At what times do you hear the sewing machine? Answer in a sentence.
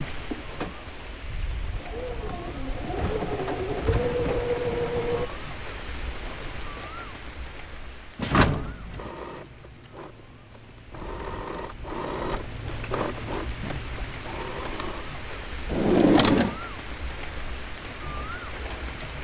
The sewing machine can be heard from 0.1 to 5.3 s and from 8.9 to 15.1 s.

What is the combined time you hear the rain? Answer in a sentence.
The rain can be heard for 19 seconds in total.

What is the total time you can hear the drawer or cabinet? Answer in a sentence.
The drawer or cabinet can be heard for 3 seconds in total.